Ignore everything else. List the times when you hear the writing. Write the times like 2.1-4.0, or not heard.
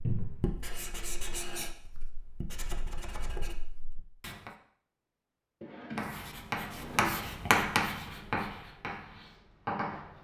0.0-4.5, 6.0-10.1.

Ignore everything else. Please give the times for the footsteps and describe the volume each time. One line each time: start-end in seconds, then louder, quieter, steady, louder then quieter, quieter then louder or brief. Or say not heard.
not heard.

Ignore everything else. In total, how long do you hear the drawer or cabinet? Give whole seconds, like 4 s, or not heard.
2 s.